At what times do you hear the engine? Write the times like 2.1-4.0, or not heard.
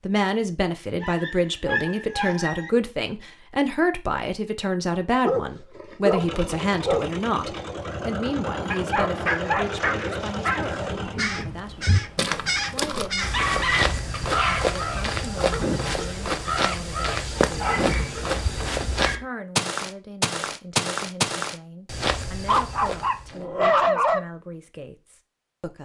6.2-11.2.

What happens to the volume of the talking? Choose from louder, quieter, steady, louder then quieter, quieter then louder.
quieter.